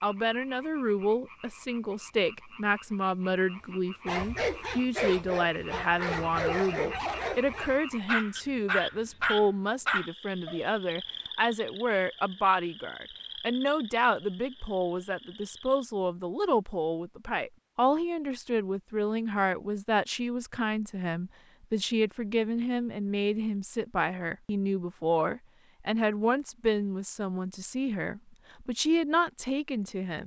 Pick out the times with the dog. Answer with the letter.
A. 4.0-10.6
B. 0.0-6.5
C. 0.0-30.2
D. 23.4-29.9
A.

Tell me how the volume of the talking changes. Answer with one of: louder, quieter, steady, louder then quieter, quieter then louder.
steady.